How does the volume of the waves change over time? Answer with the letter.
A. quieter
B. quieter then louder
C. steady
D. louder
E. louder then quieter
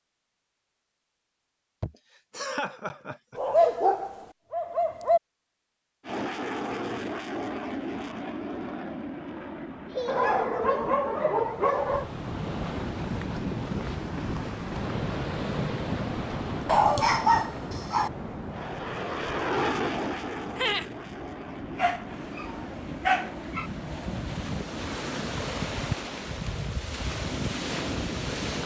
B.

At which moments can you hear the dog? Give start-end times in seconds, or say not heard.
3.4-5.2, 10.1-12.1, 16.6-18.1, 21.8-23.7.